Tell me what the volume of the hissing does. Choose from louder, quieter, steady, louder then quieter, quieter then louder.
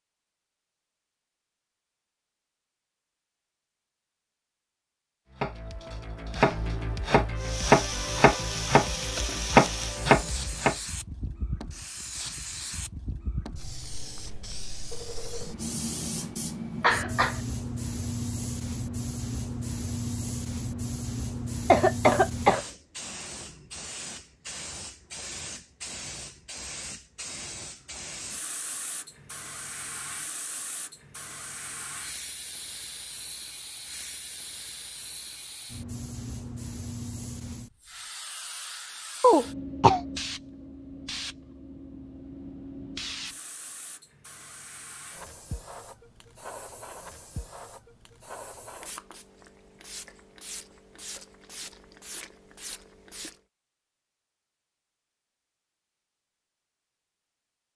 quieter.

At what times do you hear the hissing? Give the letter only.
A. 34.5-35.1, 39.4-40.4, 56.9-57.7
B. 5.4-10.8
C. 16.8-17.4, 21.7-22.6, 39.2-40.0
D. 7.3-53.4
D.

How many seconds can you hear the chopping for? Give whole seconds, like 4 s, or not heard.
5 s.